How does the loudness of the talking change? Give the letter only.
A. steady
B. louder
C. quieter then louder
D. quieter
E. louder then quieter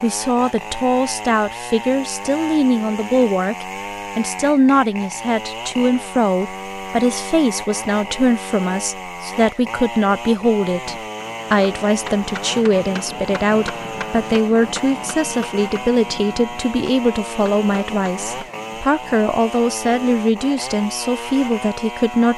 A.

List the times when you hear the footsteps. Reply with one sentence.
The footsteps can't be heard in this clip.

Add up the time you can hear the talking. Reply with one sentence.
The talking can be heard for 22 seconds in total.